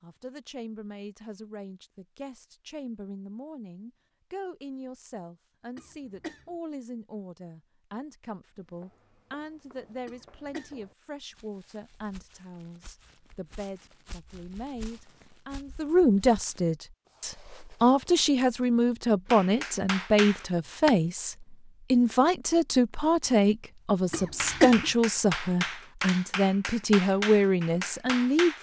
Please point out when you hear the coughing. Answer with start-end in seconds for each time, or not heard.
5.8-6.5, 10.1-10.8, 24.1-24.9.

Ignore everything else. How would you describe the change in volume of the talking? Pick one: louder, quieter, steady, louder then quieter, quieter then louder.
louder.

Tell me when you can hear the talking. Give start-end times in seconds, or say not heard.
0.0-28.5.